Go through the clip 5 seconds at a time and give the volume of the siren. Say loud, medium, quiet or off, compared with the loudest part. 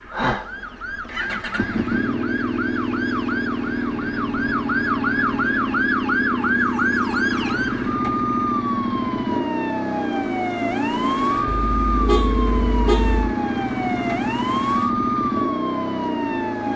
medium, loud, loud, loud.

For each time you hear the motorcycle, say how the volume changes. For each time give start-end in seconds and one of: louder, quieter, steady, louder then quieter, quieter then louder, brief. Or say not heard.
0.0-16.7 steady.